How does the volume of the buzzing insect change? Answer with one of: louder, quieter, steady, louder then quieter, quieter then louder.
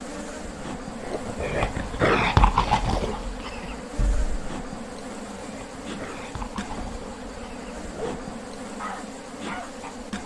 steady.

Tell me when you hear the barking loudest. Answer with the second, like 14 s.
2 s.